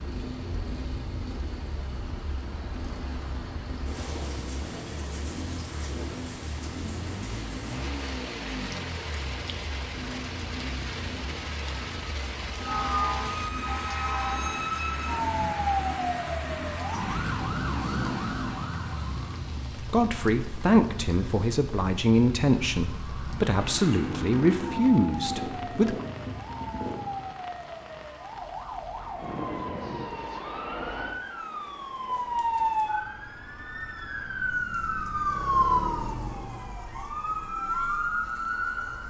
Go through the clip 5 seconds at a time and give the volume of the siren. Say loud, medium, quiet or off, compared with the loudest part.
off, off, loud, loud, medium, medium, loud, loud.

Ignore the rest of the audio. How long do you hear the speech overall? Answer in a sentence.
The speech can be heard for 6 seconds in total.